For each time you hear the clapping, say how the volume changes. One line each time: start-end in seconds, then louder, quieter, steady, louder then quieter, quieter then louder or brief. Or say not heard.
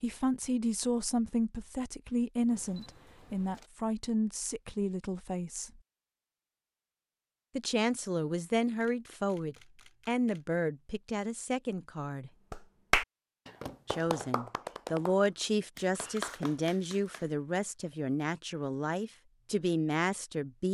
12.5-17.3 quieter then louder.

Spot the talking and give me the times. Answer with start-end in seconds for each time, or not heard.
0.0-5.8, 7.5-12.3, 13.8-20.6.